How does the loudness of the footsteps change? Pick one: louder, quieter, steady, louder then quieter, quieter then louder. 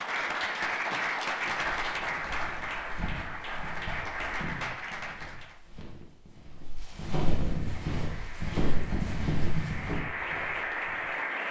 louder.